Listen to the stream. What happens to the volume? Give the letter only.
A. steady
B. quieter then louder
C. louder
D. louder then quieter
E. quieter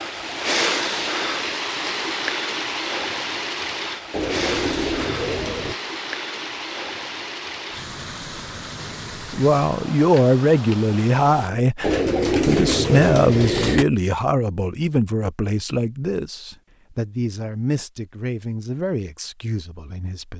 E.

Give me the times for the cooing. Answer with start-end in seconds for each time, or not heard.
4.1-5.8, 11.8-13.8.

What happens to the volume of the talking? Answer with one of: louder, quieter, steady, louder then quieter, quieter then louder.
quieter.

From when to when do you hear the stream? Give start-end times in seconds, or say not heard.
0.0-11.5.